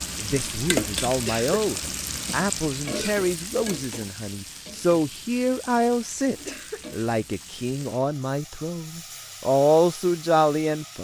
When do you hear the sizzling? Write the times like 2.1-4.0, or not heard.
0.0-10.9.